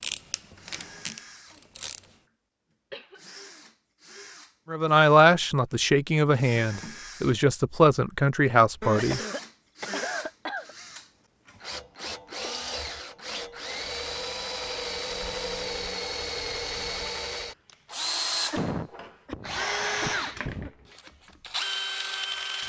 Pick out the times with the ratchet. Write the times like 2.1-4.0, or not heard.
0.0-2.0.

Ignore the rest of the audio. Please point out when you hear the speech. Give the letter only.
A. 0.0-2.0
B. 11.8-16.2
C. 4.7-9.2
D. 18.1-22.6
C.